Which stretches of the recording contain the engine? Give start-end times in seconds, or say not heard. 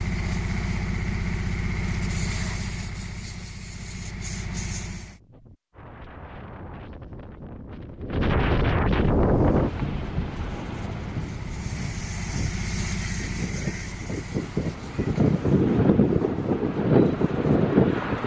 0.0-5.2, 9.0-18.2.